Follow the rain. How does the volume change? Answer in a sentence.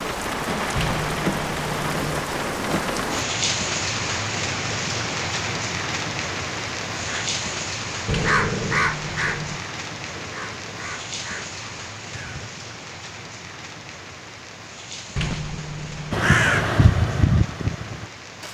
The loudness of the rain goes down.